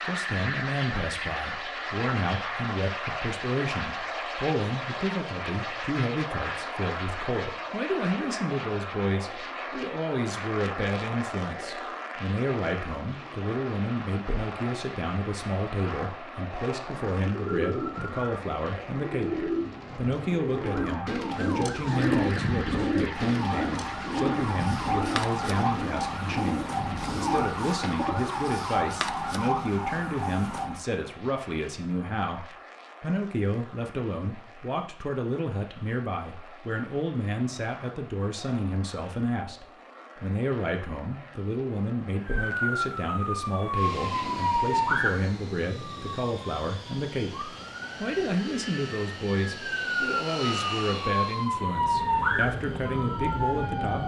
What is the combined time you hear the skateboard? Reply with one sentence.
You can't hear the skateboard here.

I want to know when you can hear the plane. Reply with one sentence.
You can hear the plane from 0.0 to 54.0 s.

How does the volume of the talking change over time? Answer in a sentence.
The volume of the talking stays about the same.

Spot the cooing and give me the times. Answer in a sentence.
You can hear the cooing from 17.1 to 28.3 s.